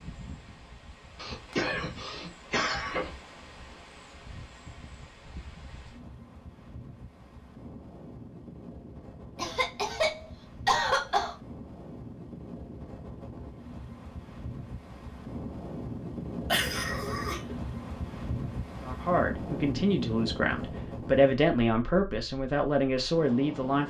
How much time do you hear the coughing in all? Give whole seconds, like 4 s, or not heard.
5 s.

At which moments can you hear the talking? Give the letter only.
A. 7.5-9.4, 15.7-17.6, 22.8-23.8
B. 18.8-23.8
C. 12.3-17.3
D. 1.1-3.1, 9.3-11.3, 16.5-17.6
B.